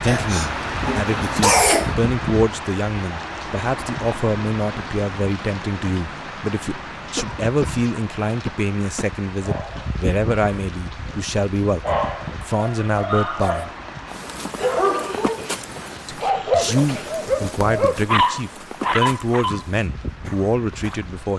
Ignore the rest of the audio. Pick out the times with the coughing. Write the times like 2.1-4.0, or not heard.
0.1-1.9, 7.2-9.1, 14.6-17.1.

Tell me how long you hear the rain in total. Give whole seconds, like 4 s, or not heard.
21 s.